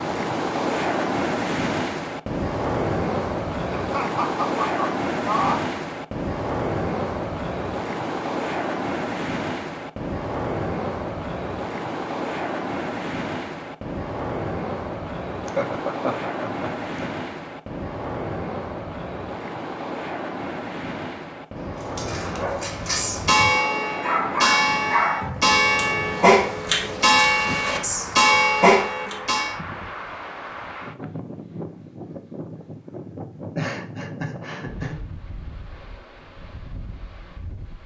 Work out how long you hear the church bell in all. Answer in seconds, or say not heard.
7 s.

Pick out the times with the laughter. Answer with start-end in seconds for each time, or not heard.
3.8-5.7, 15.4-17.1, 33.5-35.0.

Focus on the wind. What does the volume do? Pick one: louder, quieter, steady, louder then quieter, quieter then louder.
quieter.